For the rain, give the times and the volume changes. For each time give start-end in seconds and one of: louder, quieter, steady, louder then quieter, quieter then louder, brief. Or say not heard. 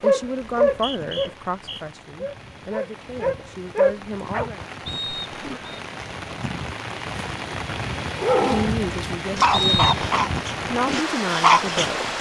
0.0-12.1 louder.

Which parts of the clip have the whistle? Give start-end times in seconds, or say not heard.
0.6-1.8, 4.8-5.8, 9.5-9.9.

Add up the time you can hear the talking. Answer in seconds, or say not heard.
8 s.